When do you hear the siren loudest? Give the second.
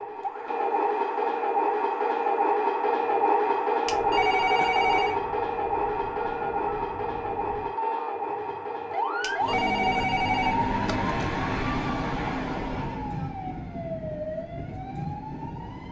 11 s.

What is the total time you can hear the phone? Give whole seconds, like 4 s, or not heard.
3 s.